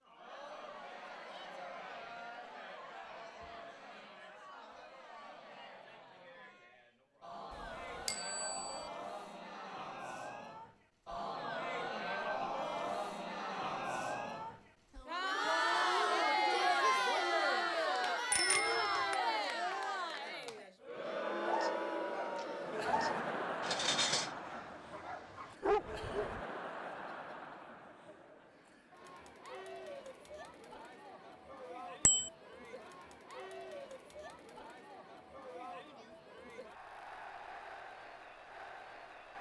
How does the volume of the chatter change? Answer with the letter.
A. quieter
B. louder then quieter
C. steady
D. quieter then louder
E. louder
B.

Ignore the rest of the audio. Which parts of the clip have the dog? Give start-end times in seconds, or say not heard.
21.1-26.4.